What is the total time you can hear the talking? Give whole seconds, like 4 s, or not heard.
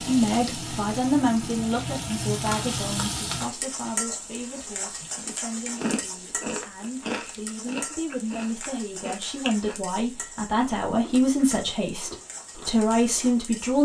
14 s.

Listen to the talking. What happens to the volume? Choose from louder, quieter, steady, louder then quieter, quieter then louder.
quieter then louder.